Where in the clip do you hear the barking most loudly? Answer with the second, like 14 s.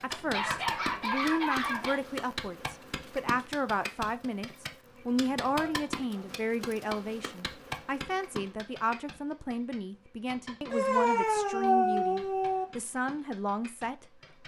12 s.